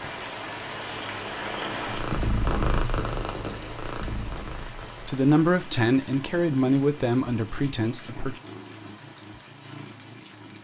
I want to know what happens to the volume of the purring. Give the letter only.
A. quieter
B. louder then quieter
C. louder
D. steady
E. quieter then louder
A.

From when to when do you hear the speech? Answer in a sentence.
The speech can be heard from 5.0 to 8.4 s.